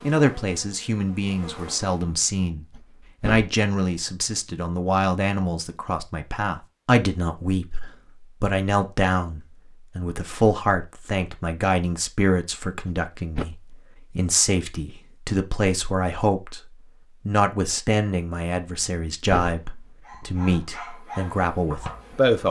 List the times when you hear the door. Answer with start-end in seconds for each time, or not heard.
2.8-3.5, 12.8-13.4, 18.8-20.2.